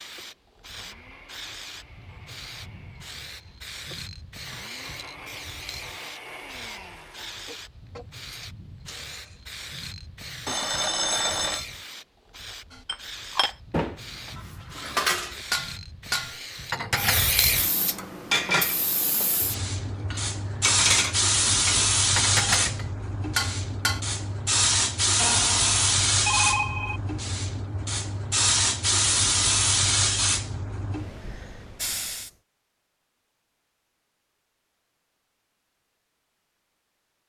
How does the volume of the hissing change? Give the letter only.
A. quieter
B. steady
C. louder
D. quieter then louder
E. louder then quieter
C.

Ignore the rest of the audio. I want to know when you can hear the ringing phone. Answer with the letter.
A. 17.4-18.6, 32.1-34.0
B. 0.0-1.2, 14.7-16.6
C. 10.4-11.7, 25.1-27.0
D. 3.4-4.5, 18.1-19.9
C.